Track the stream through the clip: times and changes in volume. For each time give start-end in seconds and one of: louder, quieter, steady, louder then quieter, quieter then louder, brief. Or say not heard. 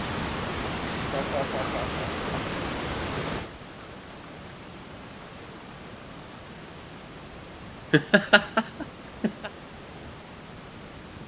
0.0-11.2 quieter.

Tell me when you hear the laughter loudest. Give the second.
8 s.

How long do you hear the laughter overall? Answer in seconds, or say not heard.
3 s.